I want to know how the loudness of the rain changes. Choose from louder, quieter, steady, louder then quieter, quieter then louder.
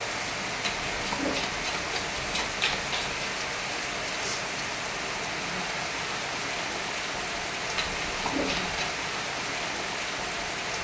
steady.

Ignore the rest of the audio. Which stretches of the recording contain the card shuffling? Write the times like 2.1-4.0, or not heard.
0.6-3.2, 7.8-8.9.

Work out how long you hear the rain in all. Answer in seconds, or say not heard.
11 s.